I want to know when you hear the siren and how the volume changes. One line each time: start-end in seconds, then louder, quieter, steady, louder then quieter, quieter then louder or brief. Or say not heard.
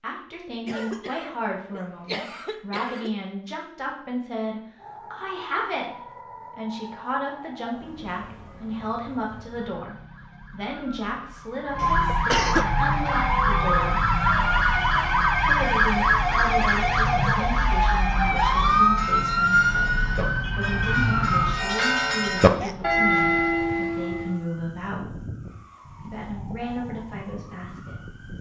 4.8-28.3 louder then quieter.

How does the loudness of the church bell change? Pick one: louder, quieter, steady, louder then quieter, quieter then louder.
louder.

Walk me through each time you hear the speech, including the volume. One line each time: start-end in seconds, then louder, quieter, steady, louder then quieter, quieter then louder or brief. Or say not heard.
0.0-14.0 steady
15.4-25.1 steady
26.1-28.1 brief.